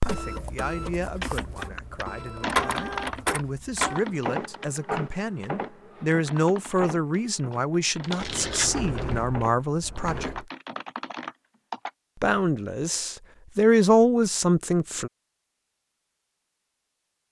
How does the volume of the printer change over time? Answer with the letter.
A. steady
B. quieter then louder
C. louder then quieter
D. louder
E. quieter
C.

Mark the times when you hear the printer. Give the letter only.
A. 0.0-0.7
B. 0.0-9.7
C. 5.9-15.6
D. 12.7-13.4
B.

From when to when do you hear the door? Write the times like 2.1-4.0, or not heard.
8.2-10.4.